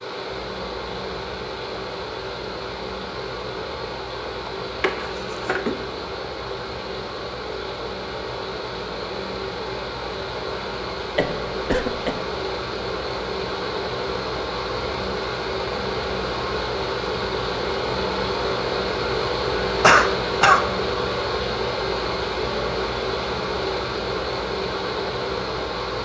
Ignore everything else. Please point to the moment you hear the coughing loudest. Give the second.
20 s.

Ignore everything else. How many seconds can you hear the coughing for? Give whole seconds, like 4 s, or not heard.
3 s.